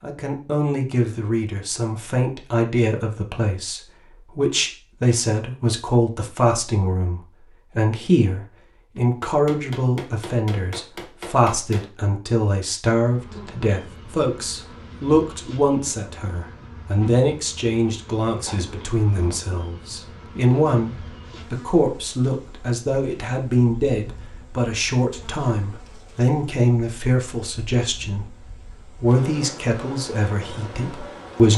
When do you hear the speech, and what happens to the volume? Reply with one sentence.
The speech can be heard from 0.0 to 31.5 s, at a steady volume.